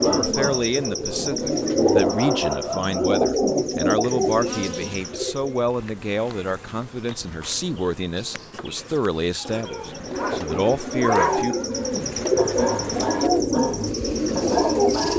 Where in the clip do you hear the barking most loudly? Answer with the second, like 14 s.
11 s.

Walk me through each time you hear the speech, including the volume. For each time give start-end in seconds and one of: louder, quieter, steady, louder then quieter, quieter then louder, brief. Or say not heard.
0.0-11.6 steady.